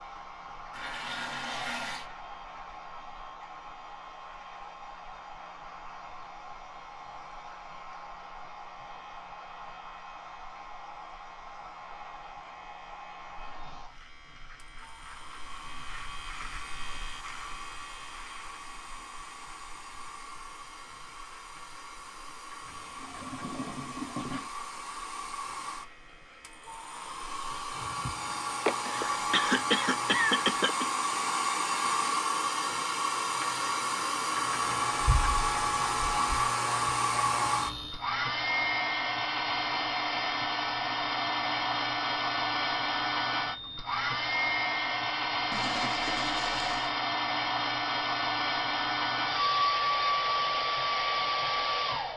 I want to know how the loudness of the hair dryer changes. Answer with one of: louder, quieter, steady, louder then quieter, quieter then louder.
louder.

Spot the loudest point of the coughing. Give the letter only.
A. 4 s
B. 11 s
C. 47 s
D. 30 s
D.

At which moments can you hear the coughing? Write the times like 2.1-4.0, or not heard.
28.6-30.9.